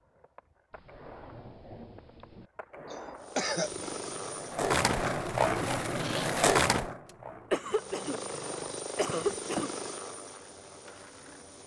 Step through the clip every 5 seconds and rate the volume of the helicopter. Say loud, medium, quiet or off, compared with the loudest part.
loud, loud, medium.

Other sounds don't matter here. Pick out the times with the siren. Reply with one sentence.
You can't hear the siren here.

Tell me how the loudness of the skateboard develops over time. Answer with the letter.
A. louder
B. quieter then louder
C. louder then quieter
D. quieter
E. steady
C.